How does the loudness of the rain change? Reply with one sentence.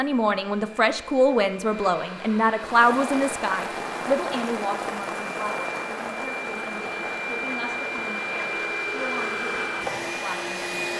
The volume of the rain goes down.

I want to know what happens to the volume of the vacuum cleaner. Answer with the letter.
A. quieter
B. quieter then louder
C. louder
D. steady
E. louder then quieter
C.